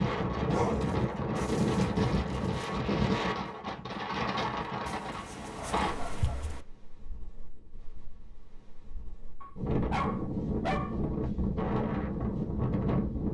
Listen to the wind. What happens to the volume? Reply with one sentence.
The volume of the wind goes down, then up.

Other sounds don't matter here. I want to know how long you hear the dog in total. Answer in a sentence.
You can hear the dog for 5 seconds altogether.